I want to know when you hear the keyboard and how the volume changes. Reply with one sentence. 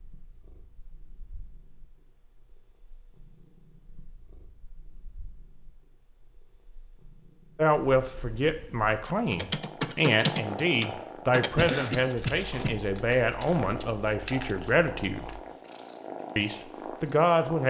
You can hear the keyboard from 9.1 to 15.4 s, getting quieter.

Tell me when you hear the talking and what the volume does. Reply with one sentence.
The talking can be heard from 7.5 to 15.3 s, at a steady volume; and briefly from 16.4 to 17.6 s.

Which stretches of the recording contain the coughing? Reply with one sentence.
The coughing can be heard from 11.6 to 12.7 s.